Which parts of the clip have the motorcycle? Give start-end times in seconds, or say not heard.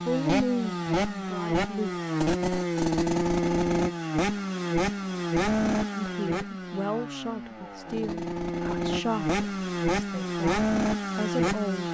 0.0-11.8.